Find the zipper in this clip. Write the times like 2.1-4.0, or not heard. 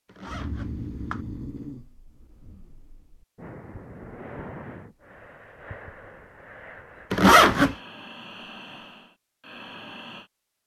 0.1-1.2, 7.1-7.8.